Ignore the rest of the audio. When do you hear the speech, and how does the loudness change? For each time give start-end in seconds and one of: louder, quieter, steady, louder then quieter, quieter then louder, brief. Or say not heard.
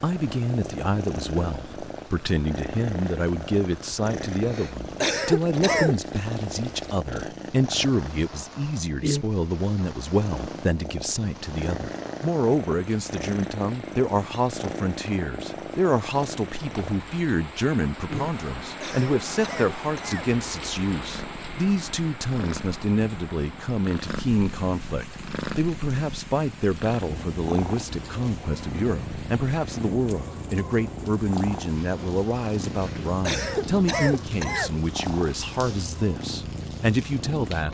0.0-37.6 steady.